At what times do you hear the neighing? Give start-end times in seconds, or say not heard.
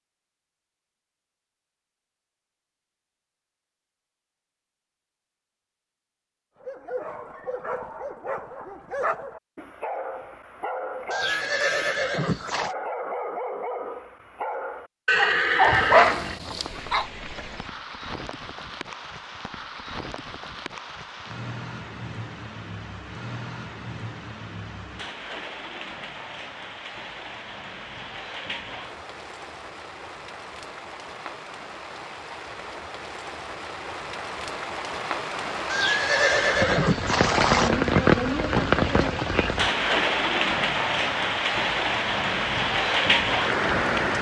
11.1-12.8, 15.1-16.8, 35.7-37.7.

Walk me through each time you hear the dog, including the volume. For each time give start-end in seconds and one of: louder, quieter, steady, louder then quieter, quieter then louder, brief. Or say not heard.
6.6-17.1 louder.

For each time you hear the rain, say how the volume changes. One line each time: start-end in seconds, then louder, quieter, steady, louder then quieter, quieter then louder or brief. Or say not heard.
16.5-44.1 louder.